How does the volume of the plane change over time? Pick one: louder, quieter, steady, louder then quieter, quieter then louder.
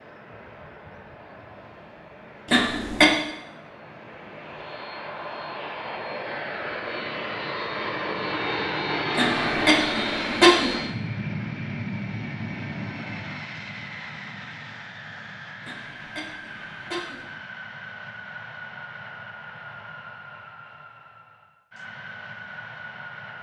louder then quieter.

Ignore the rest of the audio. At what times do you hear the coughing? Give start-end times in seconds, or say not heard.
2.5-3.1, 9.2-10.8, 15.7-17.2.